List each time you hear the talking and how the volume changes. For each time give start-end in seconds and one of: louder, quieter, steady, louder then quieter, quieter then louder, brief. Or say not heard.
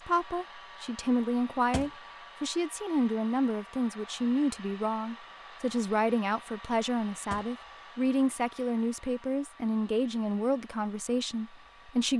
0.1-12.1 steady.